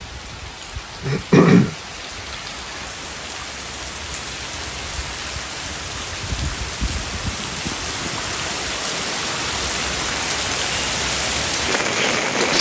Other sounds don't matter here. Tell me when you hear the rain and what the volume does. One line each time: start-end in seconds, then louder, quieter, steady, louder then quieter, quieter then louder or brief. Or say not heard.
0.0-12.5 louder.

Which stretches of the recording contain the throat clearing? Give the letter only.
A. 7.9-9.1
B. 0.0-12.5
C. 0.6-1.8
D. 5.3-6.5
C.